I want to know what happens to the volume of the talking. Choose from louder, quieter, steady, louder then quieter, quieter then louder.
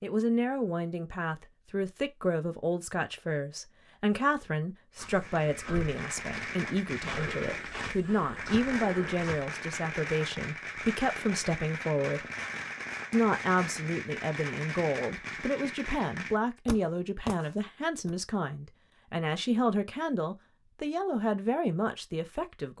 steady.